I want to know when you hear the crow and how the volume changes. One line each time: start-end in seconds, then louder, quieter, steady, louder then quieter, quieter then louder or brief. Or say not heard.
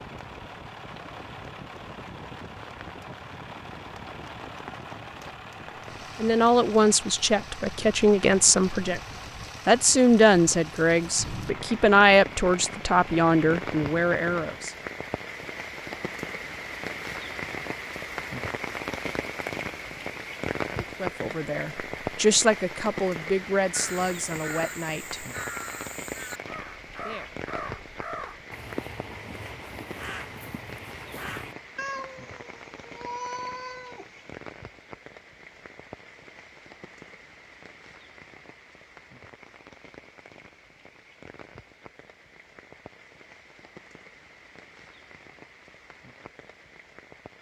23.7-31.6 steady.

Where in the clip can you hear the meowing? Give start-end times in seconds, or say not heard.
31.8-34.2.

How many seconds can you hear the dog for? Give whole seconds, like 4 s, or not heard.
not heard.